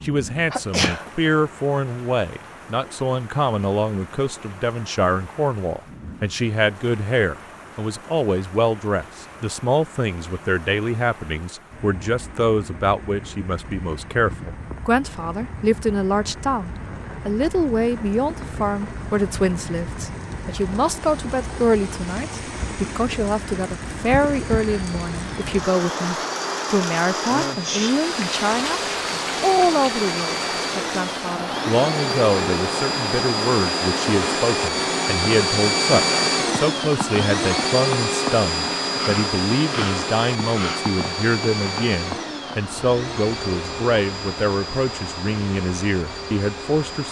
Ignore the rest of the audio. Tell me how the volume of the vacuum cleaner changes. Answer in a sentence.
The volume of the vacuum cleaner goes up, then down.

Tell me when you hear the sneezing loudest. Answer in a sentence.
The loudest moment of the sneezing is at 1 second.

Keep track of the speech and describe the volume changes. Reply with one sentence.
The loudness of the speech stays about the same.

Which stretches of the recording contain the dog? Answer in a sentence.
You can't hear the dog here.